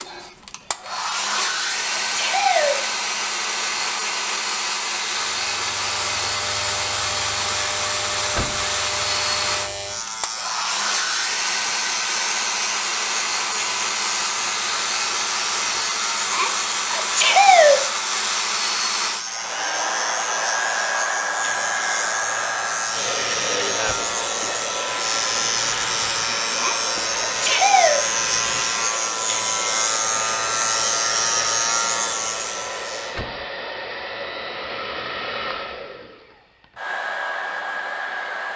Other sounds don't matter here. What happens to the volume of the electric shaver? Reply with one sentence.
The loudness of the electric shaver goes up.